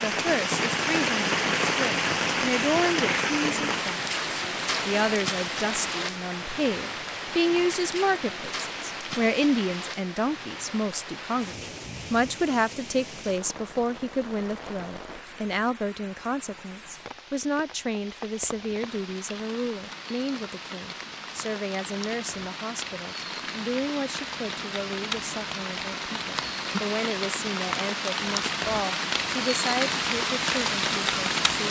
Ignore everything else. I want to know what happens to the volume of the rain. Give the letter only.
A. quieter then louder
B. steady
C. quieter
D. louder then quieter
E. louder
A.